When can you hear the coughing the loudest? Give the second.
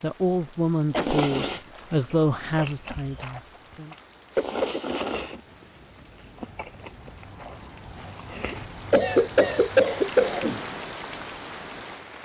10 s.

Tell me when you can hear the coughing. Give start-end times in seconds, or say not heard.
0.9-1.4, 4.3-5.0, 8.9-10.6.